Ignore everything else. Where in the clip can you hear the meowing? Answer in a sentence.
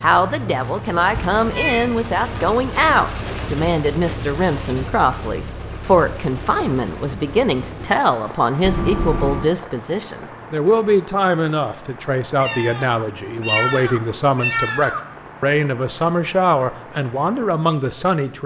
The meowing can be heard from 1.1 to 1.9 s, from 8.6 to 9.5 s and from 12.3 to 15.0 s.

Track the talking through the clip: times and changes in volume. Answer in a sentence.
You can hear the talking from 0.0 to 18.4 s, at a steady volume.